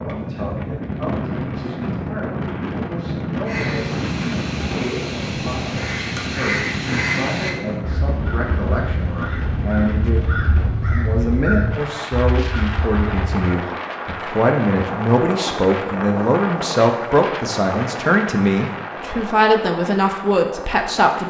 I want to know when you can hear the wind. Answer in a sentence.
You can hear the wind from 0.0 to 21.2 s.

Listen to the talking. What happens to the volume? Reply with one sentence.
The loudness of the talking goes up.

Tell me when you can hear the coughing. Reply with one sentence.
You can't hear the coughing here.